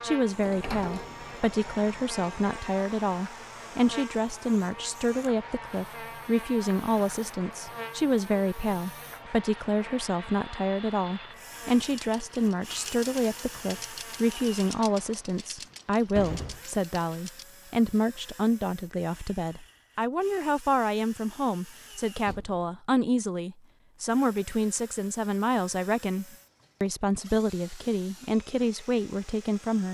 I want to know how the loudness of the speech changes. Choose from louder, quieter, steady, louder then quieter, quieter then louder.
steady.